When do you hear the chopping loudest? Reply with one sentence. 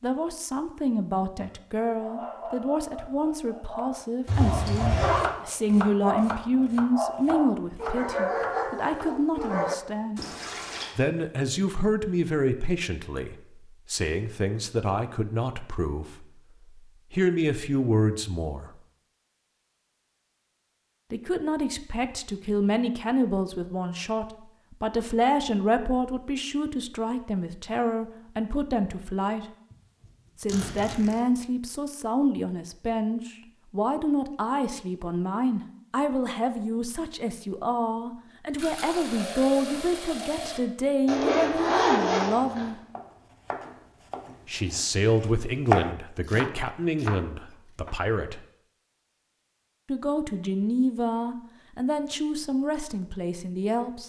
The loudest moment of the chopping is at 46 seconds.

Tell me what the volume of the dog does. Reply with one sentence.
The loudness of the dog goes up.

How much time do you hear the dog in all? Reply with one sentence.
The dog can be heard for 8 seconds in total.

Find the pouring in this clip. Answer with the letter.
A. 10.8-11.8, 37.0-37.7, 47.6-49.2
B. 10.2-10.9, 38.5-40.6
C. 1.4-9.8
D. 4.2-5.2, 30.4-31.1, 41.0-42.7
B.